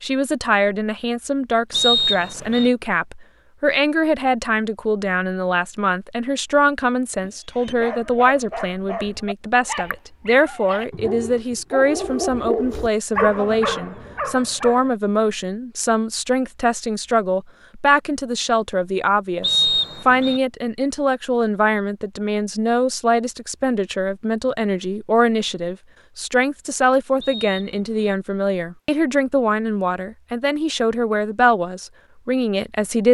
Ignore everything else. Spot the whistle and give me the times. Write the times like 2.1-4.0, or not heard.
1.7-2.7, 19.4-20.4, 27.2-28.1.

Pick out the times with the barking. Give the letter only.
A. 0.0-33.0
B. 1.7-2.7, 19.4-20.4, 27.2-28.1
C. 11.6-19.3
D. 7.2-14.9
D.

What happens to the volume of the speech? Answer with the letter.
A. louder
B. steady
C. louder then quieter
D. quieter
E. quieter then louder
B.